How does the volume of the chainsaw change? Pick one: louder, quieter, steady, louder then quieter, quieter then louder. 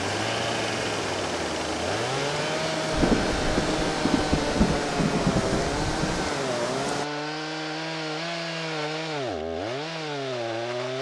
steady.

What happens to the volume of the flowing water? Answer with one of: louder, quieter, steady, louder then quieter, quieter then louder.
steady.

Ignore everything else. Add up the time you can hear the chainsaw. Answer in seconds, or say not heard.
11 s.